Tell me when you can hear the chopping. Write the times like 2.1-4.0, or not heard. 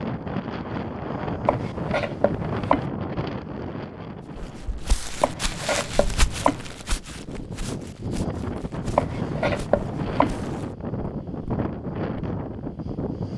1.4-2.9, 5.2-6.6, 8.9-10.3.